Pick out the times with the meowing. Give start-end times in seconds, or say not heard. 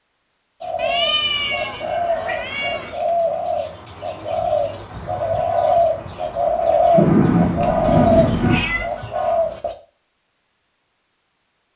0.8-3.0, 7.6-8.9.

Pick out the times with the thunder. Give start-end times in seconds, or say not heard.
6.9-8.6.